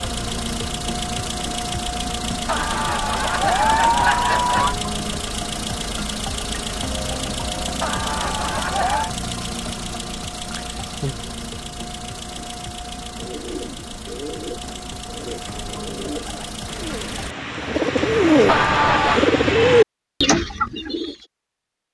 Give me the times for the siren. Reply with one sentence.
The siren can't be heard in this clip.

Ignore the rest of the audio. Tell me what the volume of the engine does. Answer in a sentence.
The volume of the engine goes down.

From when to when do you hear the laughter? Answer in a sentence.
You can hear the laughter from 2.5 to 4.8 s, from 7.8 to 9.1 s and from 18.4 to 19.2 s.